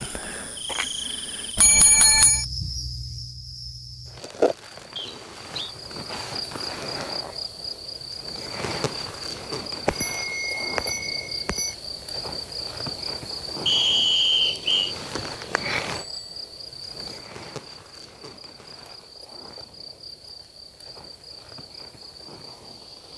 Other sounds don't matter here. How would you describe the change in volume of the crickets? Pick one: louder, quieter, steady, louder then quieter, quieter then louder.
quieter.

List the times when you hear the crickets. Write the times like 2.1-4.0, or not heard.
0.0-23.1.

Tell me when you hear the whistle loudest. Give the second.
14 s.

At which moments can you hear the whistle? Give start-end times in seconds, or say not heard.
5.0-5.8, 13.7-14.9.